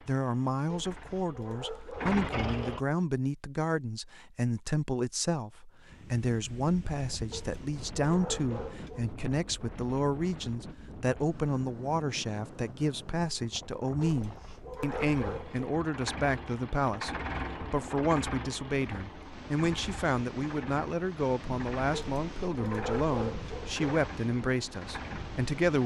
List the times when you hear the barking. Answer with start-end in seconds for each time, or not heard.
0.7-2.9, 7.3-9.2, 14.0-15.7, 21.9-24.0.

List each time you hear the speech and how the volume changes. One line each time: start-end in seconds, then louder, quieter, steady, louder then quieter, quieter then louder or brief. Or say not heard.
0.1-25.8 steady.